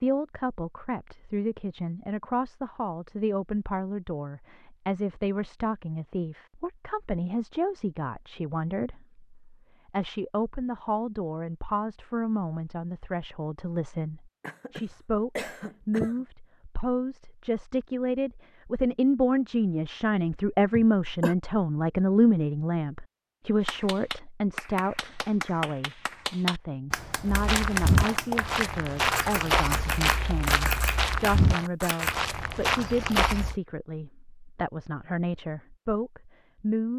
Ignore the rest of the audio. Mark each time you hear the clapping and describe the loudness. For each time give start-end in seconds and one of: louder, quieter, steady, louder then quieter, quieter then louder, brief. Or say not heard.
23.6-32.1 louder.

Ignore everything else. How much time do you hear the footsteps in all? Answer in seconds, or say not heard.
6 s.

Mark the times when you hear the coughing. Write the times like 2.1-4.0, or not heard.
14.4-16.2, 20.7-21.4.